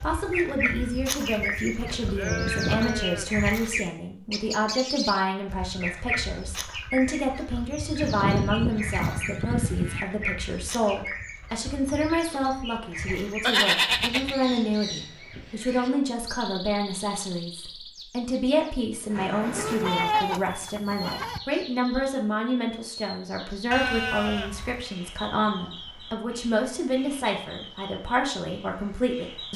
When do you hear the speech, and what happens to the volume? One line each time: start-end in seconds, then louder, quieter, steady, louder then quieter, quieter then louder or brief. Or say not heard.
0.0-29.5 steady.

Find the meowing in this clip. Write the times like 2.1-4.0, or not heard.
not heard.